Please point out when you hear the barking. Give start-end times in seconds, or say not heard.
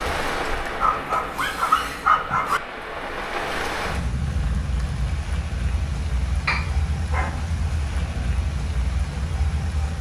0.8-2.6, 6.5-8.2.